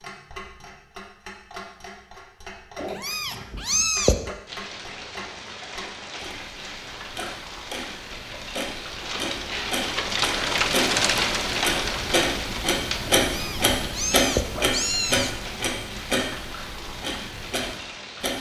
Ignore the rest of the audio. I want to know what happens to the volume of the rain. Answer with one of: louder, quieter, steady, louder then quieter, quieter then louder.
louder then quieter.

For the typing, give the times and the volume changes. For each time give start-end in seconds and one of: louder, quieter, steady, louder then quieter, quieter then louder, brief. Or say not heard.
not heard.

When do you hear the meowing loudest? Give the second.
4 s.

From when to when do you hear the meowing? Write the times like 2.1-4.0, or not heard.
2.8-4.3, 13.2-15.3.